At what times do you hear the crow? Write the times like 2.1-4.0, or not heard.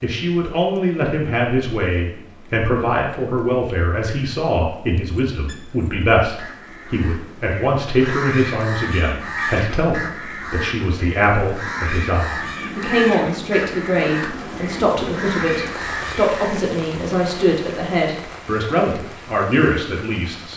5.3-16.6.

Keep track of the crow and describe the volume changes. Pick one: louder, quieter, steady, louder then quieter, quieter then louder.
louder.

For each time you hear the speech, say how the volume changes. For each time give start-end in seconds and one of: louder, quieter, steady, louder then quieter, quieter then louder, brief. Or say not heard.
0.0-20.5 steady.